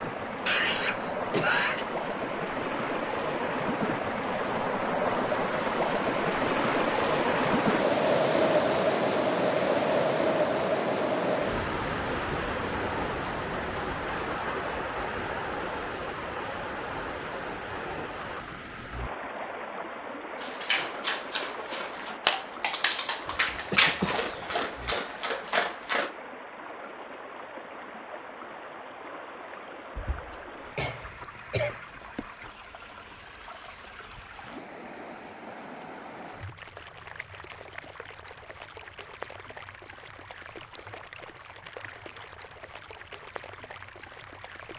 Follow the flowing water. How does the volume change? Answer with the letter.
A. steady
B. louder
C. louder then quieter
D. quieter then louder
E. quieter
E.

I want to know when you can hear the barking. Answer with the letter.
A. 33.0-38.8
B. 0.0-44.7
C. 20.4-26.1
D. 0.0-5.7
C.